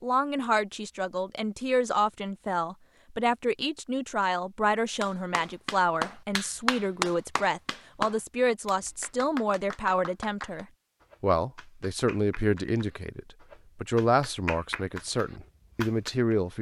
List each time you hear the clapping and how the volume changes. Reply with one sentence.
You can hear the clapping from 5.0 to 16.4 s, getting quieter then louder.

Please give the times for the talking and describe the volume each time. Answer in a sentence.
You can hear the talking from 0.0 to 16.5 s, at a steady volume.